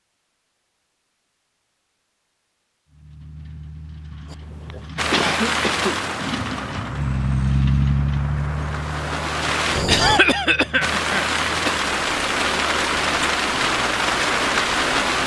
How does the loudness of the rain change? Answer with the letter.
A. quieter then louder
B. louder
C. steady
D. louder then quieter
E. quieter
A.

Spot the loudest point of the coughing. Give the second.
10 s.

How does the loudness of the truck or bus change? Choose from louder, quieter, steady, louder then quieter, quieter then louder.
louder then quieter.